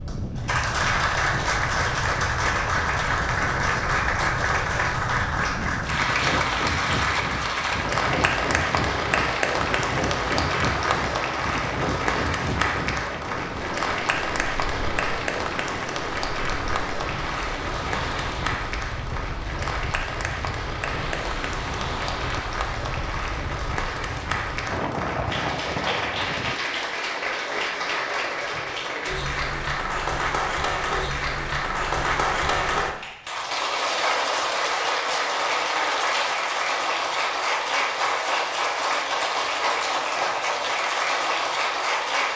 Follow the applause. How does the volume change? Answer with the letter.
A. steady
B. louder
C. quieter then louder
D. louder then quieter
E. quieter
C.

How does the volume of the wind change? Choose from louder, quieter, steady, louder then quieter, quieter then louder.
steady.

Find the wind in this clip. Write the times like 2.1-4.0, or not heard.
0.0-26.6.